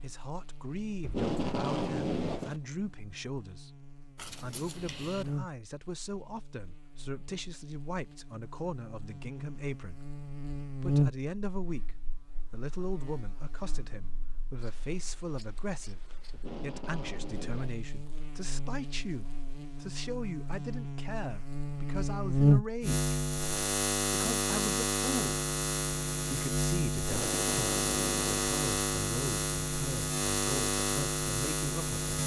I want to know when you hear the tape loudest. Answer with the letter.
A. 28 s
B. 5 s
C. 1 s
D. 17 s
C.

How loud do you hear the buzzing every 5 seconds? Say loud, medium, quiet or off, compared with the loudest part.
quiet, quiet, medium, quiet, loud, loud, loud.